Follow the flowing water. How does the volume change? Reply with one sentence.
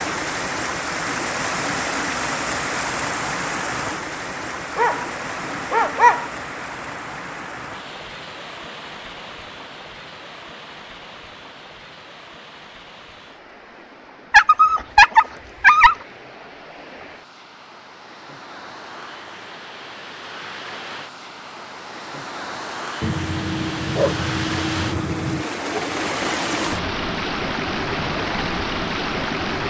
The loudness of the flowing water goes down, then up.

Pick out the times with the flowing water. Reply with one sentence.
You can hear the flowing water from 0.0 to 29.6 s.